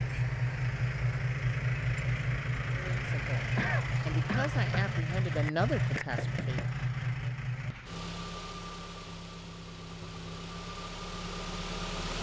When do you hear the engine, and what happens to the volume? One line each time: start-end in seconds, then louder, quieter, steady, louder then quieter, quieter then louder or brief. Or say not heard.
0.0-12.1 quieter.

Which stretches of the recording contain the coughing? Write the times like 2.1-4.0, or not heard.
3.5-4.9.